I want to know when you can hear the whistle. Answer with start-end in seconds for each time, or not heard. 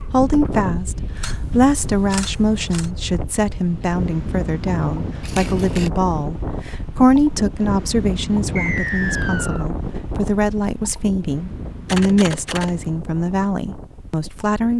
8.6-9.7.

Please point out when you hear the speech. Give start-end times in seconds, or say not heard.
0.0-14.7.